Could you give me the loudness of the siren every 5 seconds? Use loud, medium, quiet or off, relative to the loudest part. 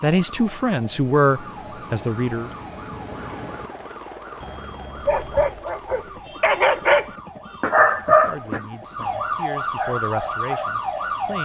quiet, medium, loud.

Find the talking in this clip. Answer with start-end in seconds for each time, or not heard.
0.0-2.5, 8.1-11.4.